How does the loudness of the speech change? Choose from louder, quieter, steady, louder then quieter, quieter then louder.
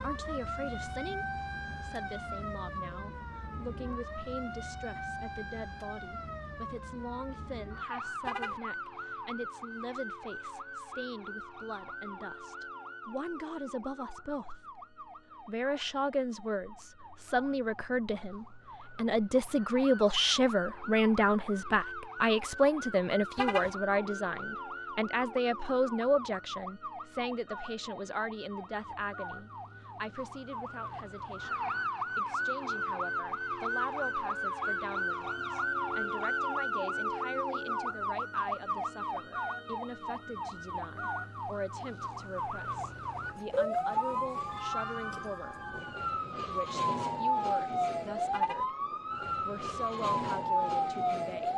louder then quieter.